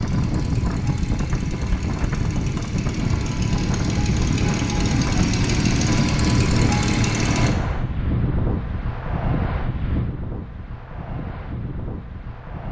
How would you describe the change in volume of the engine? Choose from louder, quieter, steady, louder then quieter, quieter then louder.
louder.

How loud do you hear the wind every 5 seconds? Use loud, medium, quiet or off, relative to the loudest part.
loud, loud, medium.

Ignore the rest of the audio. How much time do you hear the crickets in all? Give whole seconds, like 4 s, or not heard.
not heard.